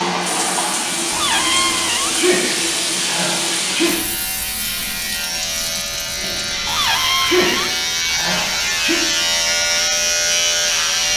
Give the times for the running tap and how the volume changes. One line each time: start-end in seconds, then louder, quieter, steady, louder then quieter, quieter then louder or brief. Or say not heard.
0.0-11.1 quieter.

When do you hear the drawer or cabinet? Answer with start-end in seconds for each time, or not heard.
1.1-2.2, 6.7-7.5.